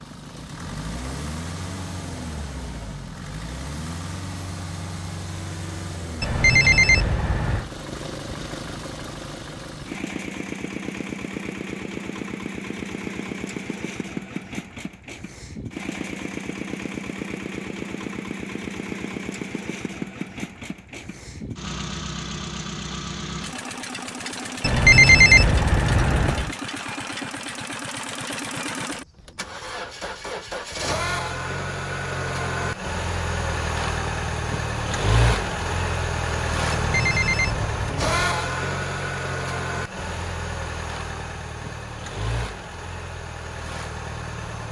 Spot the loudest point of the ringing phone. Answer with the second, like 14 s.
25 s.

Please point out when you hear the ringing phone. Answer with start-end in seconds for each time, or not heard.
6.2-7.7, 24.6-26.5, 36.7-38.1.